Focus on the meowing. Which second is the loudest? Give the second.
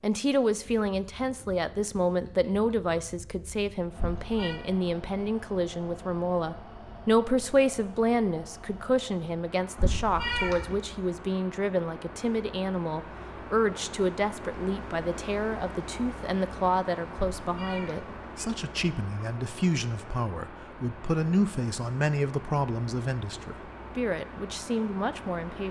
10 s.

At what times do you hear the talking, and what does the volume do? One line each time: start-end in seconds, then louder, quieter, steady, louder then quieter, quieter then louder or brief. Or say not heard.
0.0-25.6 steady.